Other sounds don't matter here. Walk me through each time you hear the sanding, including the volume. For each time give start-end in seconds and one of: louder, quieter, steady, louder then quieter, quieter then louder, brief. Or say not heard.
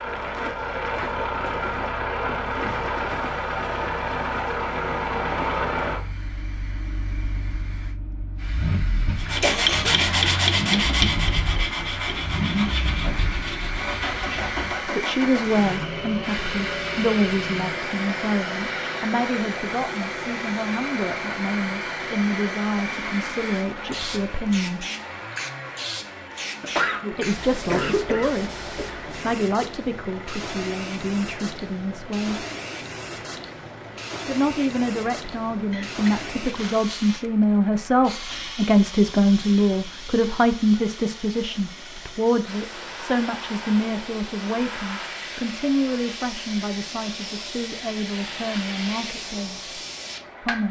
9.2-14.8 quieter.